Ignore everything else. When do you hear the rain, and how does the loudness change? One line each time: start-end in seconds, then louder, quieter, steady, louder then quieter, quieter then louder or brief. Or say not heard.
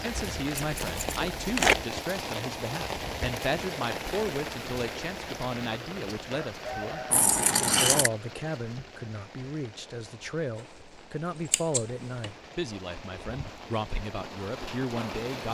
0.0-15.4 quieter then louder.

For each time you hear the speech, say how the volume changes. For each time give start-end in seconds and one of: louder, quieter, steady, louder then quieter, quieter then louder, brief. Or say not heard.
0.0-15.4 steady.